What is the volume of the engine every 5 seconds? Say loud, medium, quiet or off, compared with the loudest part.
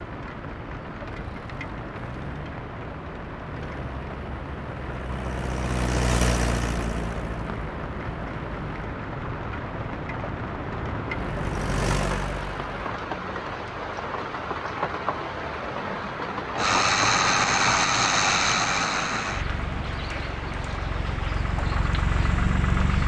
quiet, medium, medium, loud, medium.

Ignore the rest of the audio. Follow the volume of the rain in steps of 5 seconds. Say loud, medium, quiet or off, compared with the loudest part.
medium, loud, loud, loud, loud.